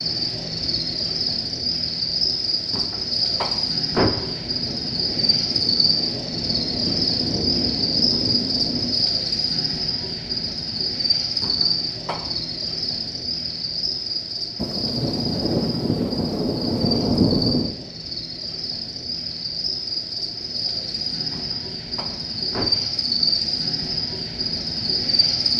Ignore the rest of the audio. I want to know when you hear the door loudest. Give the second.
4 s.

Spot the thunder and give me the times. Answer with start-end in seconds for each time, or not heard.
4.2-9.1, 14.6-17.7.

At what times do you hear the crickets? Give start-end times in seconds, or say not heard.
0.0-25.5.